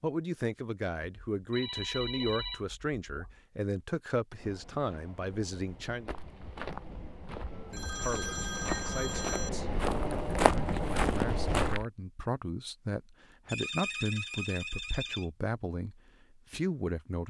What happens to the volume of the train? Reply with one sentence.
The loudness of the train goes up.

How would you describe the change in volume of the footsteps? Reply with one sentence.
The loudness of the footsteps goes down, then up.